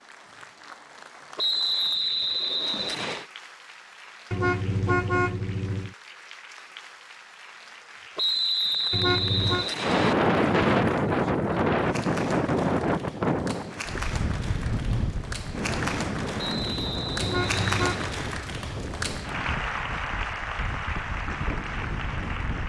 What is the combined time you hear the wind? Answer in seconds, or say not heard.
13 s.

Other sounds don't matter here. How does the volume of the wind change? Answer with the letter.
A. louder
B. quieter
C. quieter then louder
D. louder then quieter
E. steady
B.